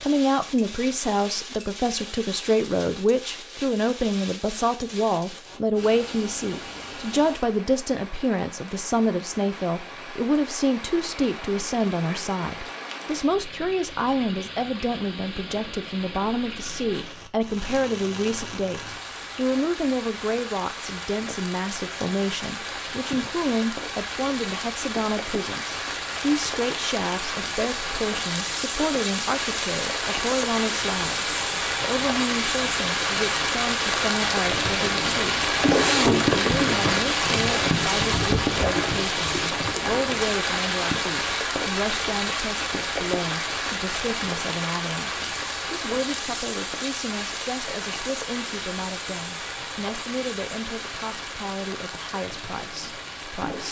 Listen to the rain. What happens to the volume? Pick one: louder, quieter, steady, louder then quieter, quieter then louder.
louder then quieter.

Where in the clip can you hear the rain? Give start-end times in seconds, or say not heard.
0.0-53.6.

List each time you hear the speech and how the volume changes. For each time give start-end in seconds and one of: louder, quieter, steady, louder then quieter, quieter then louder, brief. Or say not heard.
0.0-53.6 quieter.